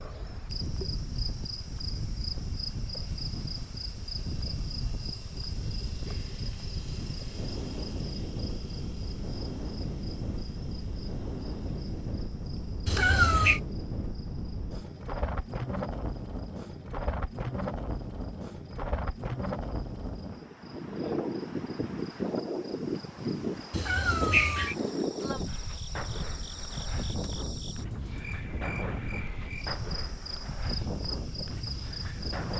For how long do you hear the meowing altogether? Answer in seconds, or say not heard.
2 s.